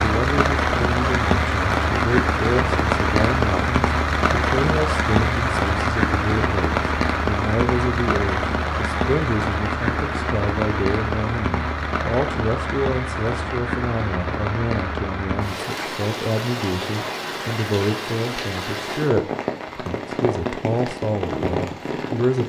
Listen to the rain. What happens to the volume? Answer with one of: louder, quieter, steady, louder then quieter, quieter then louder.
quieter.